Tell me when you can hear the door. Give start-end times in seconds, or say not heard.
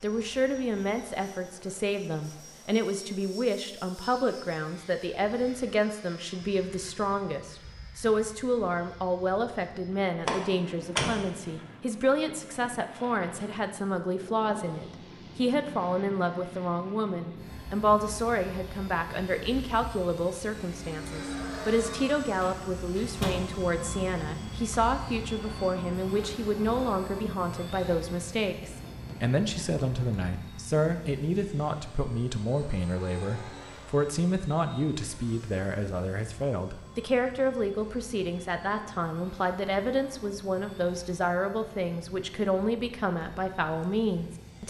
10.2-11.3, 22.4-23.4.